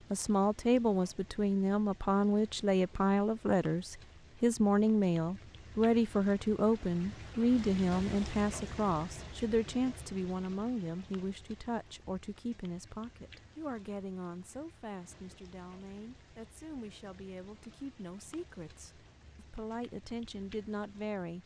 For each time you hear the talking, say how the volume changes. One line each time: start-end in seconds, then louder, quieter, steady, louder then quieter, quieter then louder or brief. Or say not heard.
0.1-21.4 quieter.